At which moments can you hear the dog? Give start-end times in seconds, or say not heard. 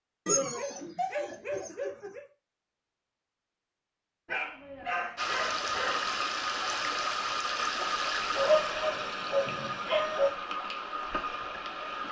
0.2-2.2, 4.2-6.1, 8.3-10.3.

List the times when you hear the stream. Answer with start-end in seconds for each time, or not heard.
5.2-12.0.